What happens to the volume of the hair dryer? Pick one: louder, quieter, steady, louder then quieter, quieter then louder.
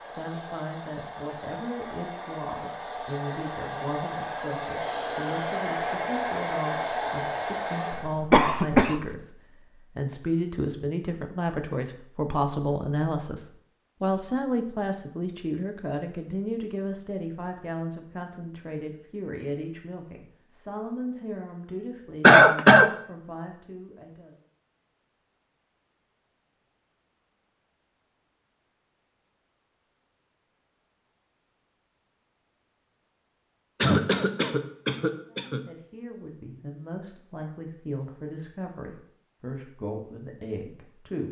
louder.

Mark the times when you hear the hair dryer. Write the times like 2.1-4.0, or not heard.
0.0-8.2.